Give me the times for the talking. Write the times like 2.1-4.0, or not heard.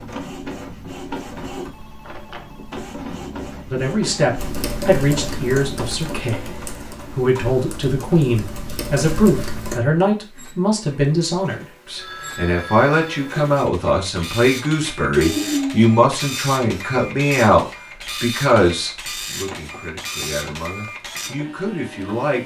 3.7-22.4.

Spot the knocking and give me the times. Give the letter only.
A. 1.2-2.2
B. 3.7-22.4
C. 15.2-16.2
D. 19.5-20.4
D.